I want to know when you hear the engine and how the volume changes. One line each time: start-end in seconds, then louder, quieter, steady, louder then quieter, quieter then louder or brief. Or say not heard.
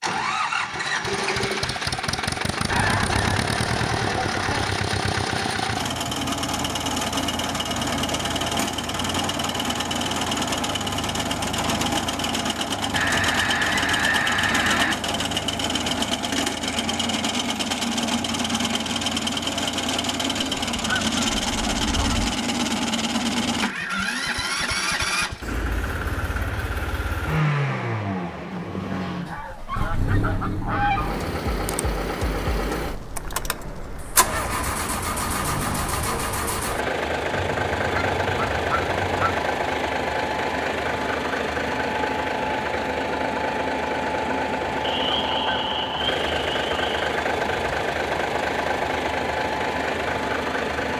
0.0-50.9 steady.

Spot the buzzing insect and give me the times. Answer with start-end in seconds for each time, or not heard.
not heard.